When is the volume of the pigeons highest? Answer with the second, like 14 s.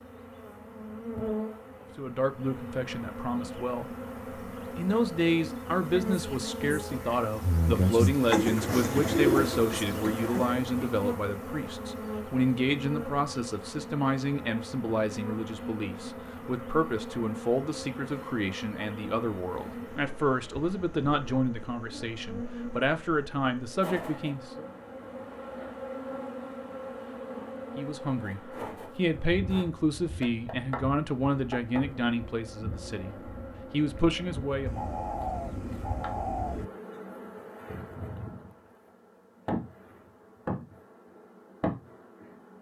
9 s.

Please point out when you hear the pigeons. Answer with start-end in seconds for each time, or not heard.
8.2-10.6, 34.6-36.6.